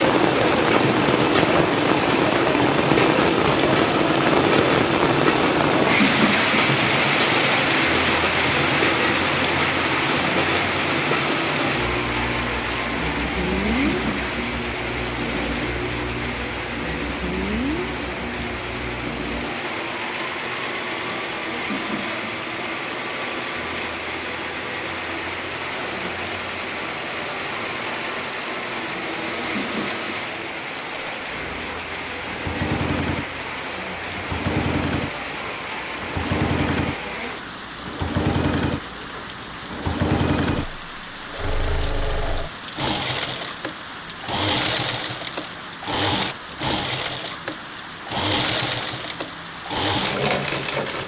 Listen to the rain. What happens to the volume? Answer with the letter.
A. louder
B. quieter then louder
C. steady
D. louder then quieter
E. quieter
E.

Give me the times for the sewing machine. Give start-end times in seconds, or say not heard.
0.0-51.0.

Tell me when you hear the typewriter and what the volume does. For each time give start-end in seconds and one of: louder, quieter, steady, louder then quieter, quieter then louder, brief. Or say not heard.
not heard.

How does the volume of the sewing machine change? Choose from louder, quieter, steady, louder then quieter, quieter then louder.
quieter then louder.